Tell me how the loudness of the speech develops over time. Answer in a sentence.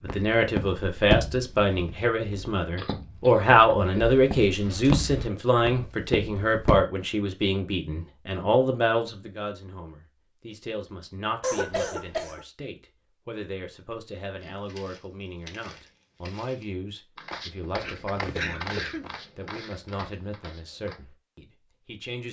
The volume of the speech goes down.